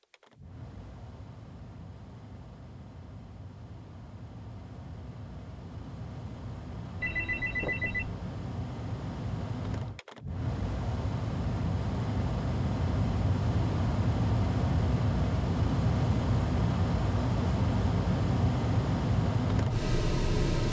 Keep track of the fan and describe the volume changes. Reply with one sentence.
The volume of the fan goes up.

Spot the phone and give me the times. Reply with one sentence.
The phone can be heard from 7.0 to 8.2 s.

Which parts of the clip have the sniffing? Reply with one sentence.
The sniffing can't be heard in this clip.